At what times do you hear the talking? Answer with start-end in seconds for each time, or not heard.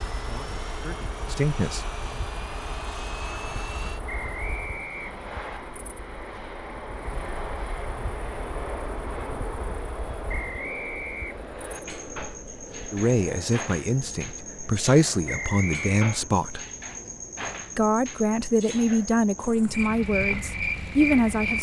0.1-1.9, 12.9-16.6, 17.8-21.5.